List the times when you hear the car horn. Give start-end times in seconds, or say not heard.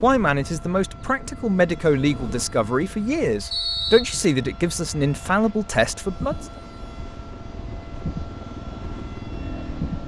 not heard.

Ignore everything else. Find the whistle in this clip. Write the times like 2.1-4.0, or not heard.
3.5-4.3.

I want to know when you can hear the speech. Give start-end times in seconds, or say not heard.
0.0-6.3.